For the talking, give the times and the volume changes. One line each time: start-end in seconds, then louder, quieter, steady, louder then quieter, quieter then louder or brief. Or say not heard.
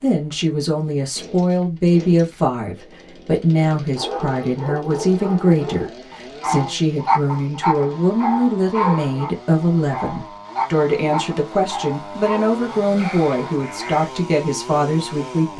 0.0-15.5 steady.